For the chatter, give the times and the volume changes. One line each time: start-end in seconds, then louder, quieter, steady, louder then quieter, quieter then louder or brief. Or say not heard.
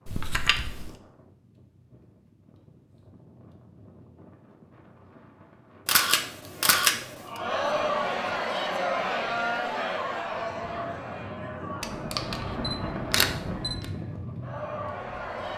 6.6-15.5 quieter.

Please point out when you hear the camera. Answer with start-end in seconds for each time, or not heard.
0.1-0.9, 5.8-7.2, 11.8-13.8.